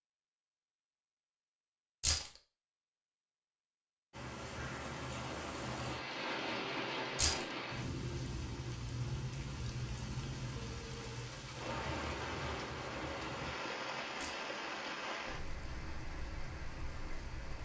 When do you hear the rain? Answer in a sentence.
You can hear the rain from 4.1 to 17.5 s.